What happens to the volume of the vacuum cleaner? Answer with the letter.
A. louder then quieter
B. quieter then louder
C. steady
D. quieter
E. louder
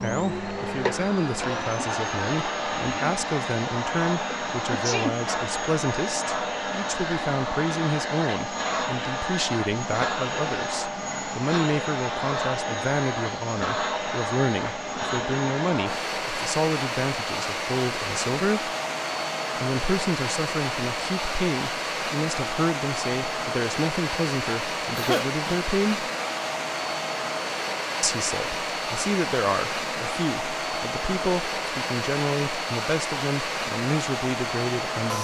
C.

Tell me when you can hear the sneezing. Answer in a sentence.
The sneezing can be heard from 4.3 to 5.2 s and from 24.9 to 25.6 s.